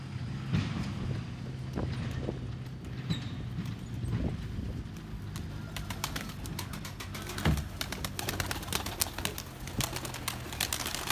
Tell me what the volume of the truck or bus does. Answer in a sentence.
The volume of the truck or bus goes down.